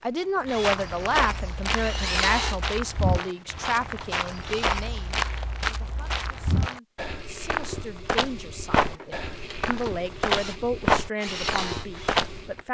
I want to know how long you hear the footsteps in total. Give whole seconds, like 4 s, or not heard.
12 s.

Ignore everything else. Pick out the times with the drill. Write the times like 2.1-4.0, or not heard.
0.0-4.7, 8.9-12.6.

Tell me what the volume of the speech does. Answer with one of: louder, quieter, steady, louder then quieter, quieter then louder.
quieter then louder.